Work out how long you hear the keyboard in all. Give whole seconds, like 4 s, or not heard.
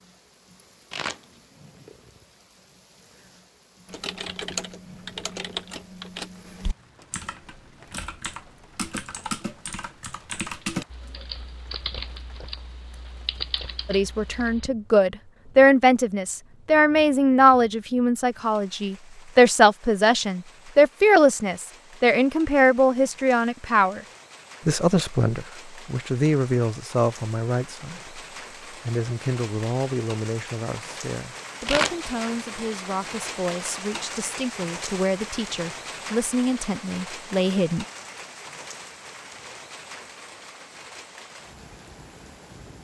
11 s.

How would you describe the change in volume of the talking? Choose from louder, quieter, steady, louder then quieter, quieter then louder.
quieter.